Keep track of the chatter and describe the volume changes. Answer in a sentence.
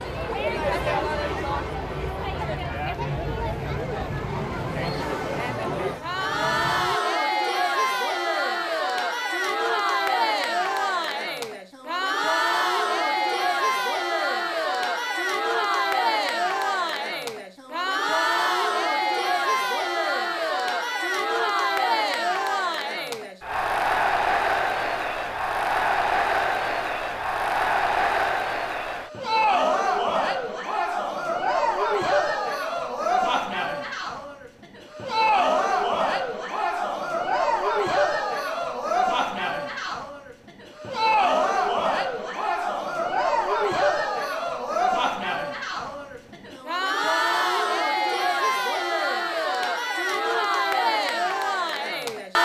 The volume of the chatter stays about the same.